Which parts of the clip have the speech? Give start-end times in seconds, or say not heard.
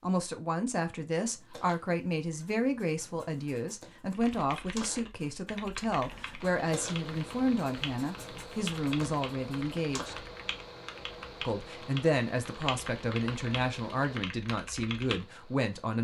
0.0-10.2, 11.4-16.0.